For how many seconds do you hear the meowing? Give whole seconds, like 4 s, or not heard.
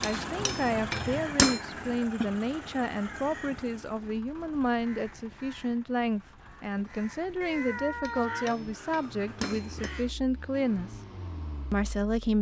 2 s.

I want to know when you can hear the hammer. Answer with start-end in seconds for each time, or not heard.
0.0-1.6, 8.1-9.9.